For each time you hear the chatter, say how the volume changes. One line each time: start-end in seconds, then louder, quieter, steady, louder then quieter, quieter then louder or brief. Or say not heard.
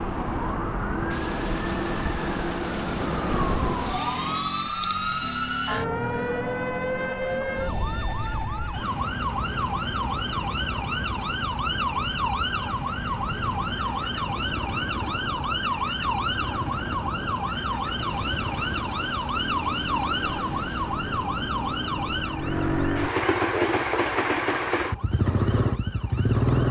not heard.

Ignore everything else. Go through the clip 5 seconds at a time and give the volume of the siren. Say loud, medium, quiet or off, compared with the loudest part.
loud, loud, loud, loud, loud, quiet.